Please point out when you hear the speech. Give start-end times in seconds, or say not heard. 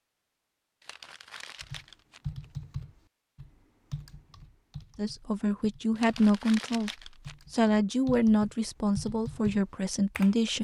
5.0-10.6.